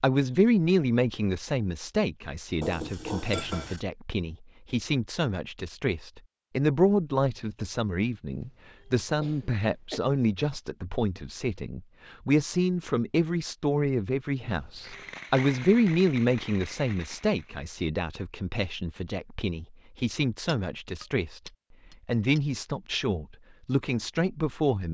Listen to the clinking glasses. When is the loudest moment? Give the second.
3 s.